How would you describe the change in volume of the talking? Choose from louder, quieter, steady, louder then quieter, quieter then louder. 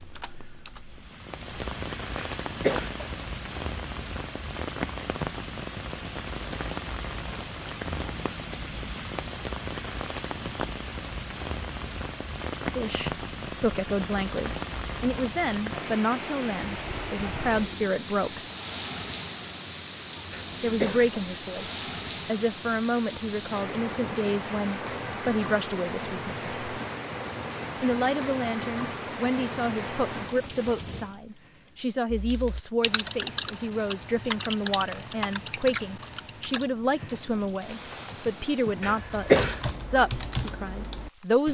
steady.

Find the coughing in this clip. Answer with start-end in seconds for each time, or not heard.
2.1-3.1, 20.3-21.1, 38.8-39.7.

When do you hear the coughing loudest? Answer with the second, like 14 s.
39 s.